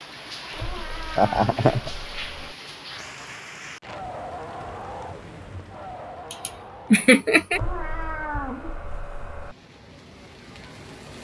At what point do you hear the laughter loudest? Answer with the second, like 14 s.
7 s.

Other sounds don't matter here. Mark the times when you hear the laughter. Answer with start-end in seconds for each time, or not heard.
1.1-1.9, 6.3-7.6.